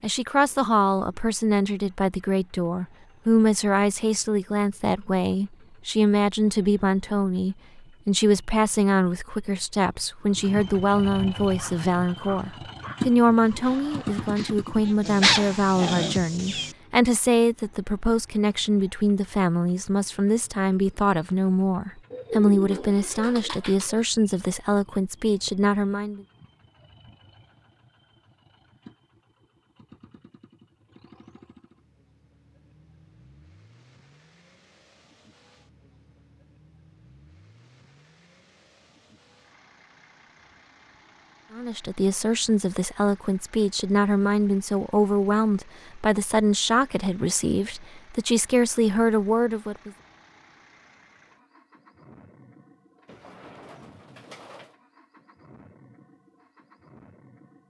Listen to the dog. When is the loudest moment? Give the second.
15 s.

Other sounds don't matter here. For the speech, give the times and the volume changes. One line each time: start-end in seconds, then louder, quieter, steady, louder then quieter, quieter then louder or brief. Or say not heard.
0.0-26.2 steady
41.5-49.9 steady.